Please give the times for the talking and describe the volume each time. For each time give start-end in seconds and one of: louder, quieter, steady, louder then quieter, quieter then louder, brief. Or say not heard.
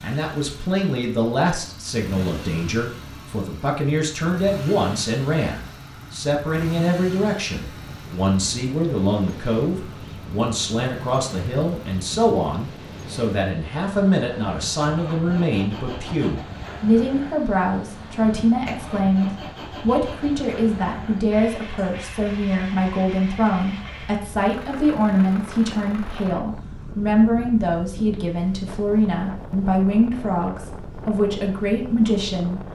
0.0-32.6 steady.